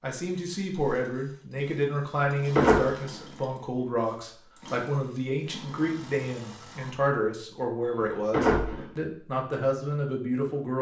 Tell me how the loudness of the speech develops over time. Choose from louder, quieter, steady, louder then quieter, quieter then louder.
steady.